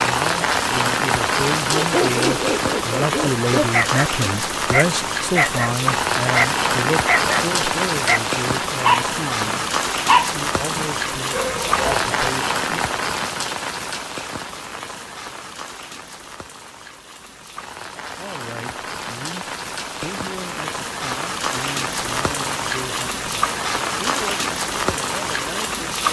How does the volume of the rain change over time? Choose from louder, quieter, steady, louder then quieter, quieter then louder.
quieter then louder.